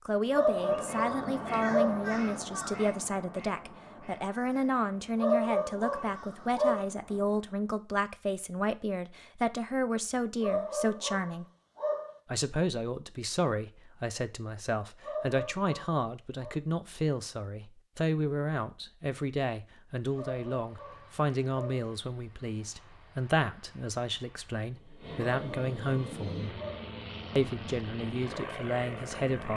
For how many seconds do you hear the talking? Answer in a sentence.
You can hear the talking for 28 seconds altogether.